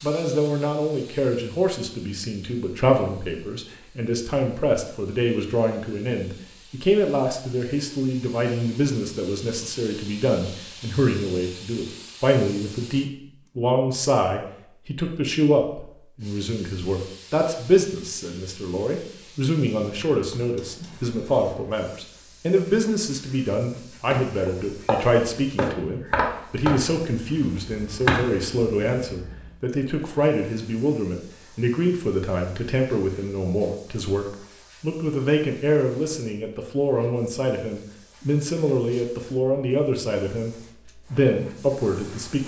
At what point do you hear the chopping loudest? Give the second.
28 s.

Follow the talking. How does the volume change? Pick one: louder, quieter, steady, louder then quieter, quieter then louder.
steady.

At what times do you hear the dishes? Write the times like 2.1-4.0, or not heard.
not heard.